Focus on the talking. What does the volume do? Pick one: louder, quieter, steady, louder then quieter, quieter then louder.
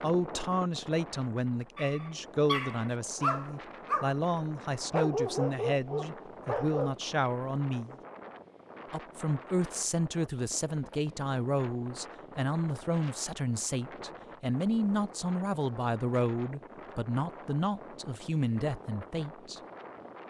steady.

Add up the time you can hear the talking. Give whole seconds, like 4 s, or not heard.
19 s.